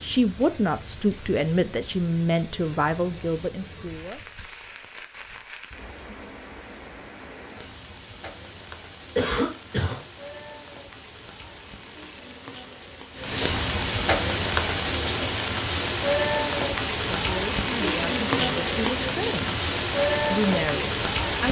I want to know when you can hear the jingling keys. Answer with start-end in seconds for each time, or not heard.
not heard.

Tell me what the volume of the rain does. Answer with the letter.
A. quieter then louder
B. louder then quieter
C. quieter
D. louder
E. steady
D.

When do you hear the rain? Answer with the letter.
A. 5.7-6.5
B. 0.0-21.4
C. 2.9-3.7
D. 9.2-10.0
B.